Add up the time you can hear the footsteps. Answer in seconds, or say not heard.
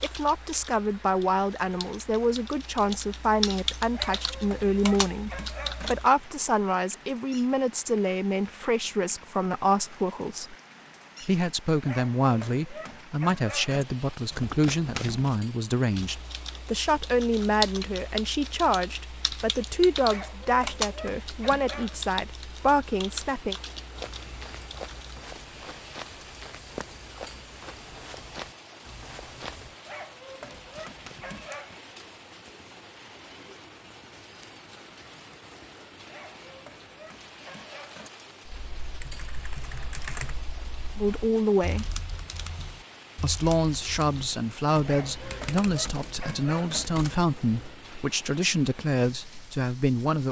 6 s.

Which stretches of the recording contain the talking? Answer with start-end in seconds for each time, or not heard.
0.0-10.6, 11.2-23.6, 41.0-42.0, 43.2-50.2.